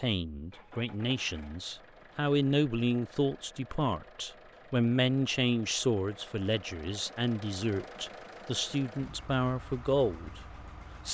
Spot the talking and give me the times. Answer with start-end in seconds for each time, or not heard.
0.0-10.4.